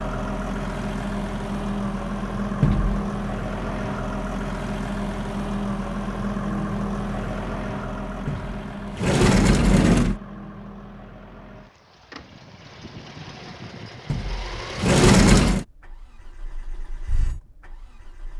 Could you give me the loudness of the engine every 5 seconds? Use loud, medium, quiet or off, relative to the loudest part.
loud, loud, medium, quiet.